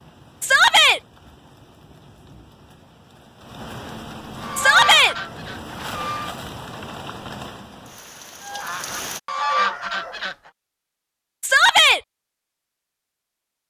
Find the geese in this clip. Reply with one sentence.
The geese can be heard from 4.3 to 6.3 s and from 8.4 to 10.3 s.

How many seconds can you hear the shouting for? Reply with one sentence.
You can hear the shouting for 2 seconds altogether.